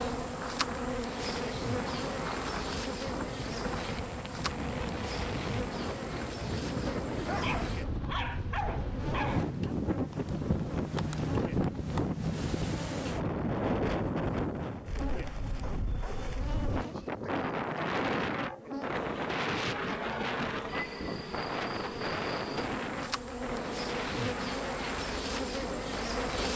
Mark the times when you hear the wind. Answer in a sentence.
You can hear the wind from 0.0 to 26.5 s.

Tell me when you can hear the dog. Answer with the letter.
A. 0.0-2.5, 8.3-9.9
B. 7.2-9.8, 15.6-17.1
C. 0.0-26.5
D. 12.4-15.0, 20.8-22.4
B.